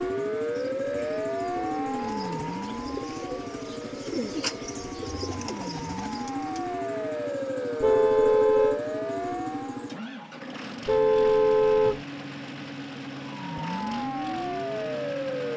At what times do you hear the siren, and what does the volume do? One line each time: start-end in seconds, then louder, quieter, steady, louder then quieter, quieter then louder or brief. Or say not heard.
0.0-9.9 quieter then louder
13.2-15.5 brief.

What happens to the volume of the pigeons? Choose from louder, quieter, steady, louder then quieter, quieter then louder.
louder then quieter.